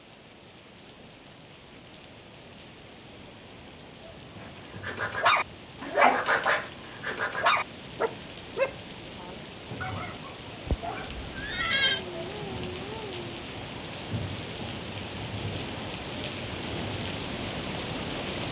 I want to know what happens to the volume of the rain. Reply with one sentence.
The volume of the rain goes up.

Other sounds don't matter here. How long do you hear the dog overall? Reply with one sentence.
The dog can be heard for 8 seconds in total.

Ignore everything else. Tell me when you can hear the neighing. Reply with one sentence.
You can hear the neighing from 10.7 to 12.0 s.